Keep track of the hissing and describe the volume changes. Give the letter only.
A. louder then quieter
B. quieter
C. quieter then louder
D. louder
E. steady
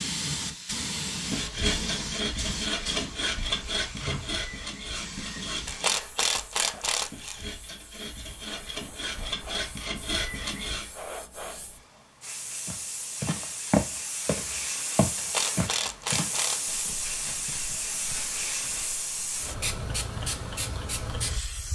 C.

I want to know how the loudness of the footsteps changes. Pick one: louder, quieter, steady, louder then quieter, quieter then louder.
quieter.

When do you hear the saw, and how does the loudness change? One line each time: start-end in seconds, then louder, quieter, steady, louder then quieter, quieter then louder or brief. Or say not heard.
1.1-10.9 quieter then louder.